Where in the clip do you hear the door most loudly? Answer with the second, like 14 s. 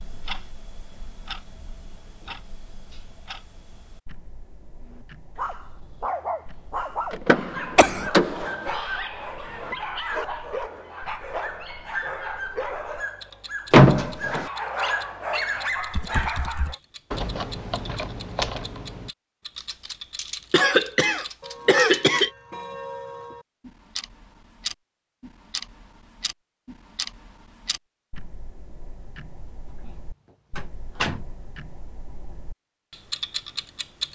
14 s.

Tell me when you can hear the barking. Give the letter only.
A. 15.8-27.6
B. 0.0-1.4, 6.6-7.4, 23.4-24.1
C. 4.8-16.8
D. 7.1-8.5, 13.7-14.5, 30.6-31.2
C.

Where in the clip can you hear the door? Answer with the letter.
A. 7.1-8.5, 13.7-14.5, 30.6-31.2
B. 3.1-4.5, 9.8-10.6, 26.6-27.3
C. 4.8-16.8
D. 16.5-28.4
A.